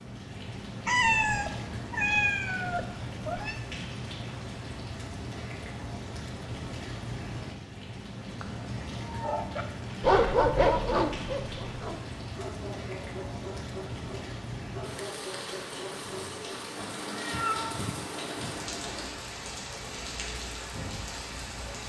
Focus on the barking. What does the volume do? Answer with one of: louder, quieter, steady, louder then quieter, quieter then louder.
quieter.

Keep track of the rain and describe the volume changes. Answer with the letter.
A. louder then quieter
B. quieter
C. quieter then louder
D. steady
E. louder
D.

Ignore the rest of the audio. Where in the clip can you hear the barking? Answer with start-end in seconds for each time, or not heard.
9.2-16.7.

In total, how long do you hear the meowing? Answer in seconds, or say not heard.
6 s.